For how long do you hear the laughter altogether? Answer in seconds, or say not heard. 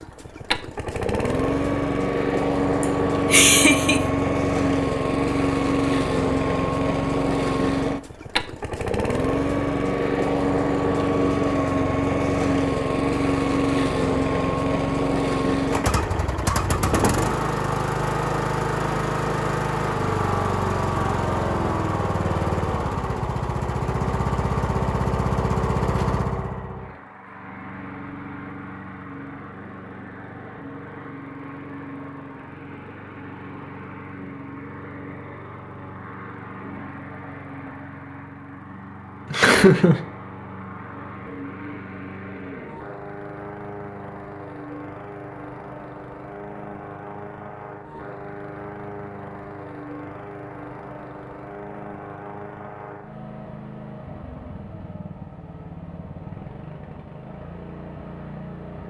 2 s.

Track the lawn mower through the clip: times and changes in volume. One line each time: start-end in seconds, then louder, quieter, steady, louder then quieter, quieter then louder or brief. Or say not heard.
0.0-58.8 quieter.